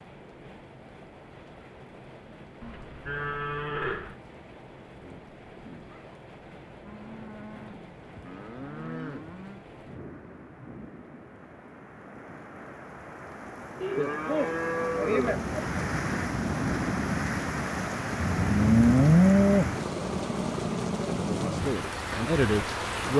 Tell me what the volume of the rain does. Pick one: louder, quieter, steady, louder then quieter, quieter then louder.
louder.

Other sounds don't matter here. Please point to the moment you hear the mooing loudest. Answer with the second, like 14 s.
19 s.